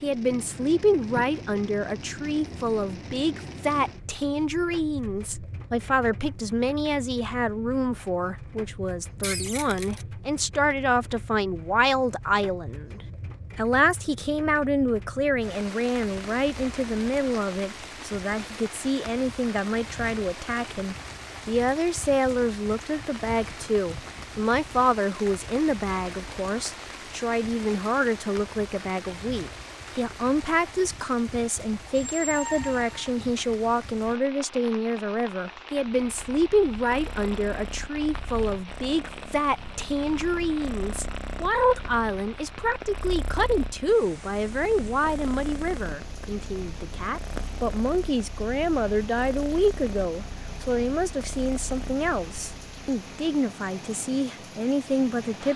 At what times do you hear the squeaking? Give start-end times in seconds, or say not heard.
9.2-10.1, 31.9-33.0.